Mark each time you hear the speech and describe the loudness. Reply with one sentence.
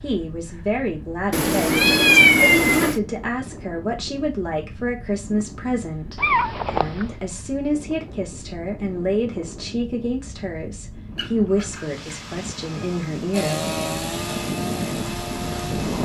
The speech can be heard from 0.0 to 13.7 s, at a steady volume.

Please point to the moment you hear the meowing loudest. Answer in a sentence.
The loudest moment of the meowing is at 2 seconds.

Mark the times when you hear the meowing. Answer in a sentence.
You can hear the meowing from 1.3 to 3.0 s, from 6.2 to 7.1 s and from 11.2 to 13.1 s.